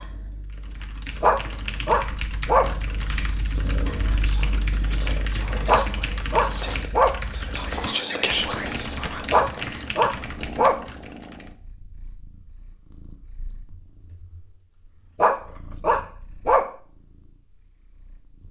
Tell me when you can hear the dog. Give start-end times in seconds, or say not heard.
1.2-2.8, 5.7-7.2, 9.3-10.8, 15.2-16.7.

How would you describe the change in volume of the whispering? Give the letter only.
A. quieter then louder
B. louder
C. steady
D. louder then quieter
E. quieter
B.